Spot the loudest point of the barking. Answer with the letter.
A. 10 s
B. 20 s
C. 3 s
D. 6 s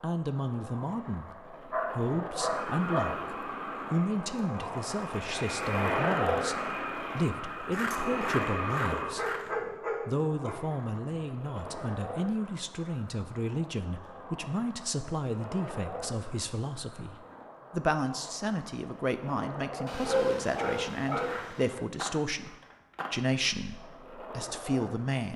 B.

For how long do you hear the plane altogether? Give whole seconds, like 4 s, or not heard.
7 s.